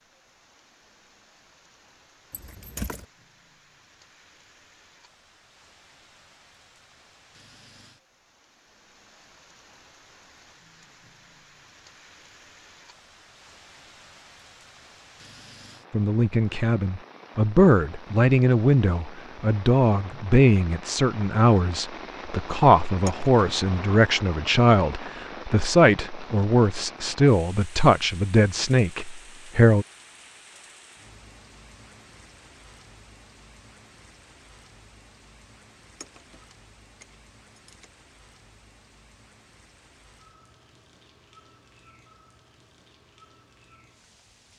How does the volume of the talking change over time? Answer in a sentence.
The loudness of the talking stays about the same.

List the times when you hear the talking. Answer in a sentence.
You can hear the talking from 15.9 to 29.9 s.